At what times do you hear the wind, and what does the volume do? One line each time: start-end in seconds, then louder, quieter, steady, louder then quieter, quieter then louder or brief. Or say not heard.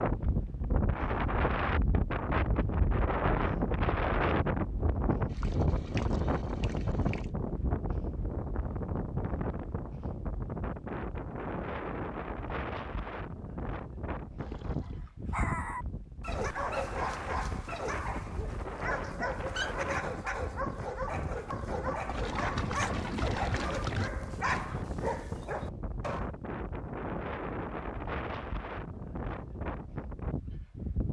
0.0-31.0 quieter.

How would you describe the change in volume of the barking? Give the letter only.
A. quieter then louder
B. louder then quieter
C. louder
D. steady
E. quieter
D.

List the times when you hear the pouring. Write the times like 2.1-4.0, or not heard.
5.3-7.3, 14.3-15.0, 22.1-24.1.